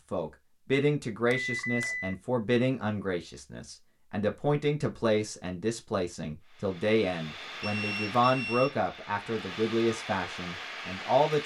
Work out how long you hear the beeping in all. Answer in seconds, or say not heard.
2 s.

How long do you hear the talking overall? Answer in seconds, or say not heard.
11 s.